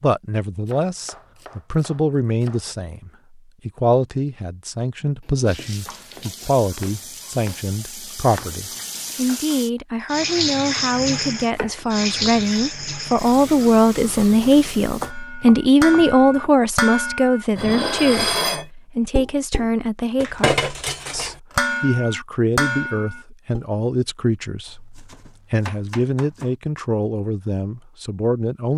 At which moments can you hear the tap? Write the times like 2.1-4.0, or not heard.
5.5-15.1.